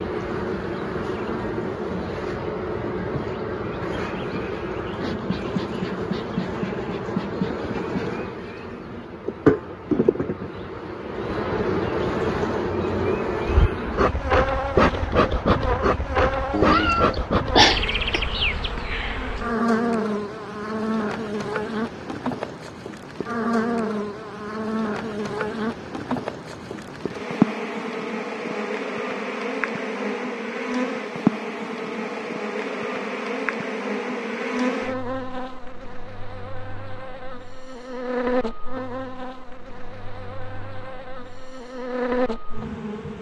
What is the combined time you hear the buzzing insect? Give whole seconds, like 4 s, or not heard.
43 s.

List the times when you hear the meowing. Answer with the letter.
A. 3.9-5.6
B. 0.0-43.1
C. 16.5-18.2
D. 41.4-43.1
C.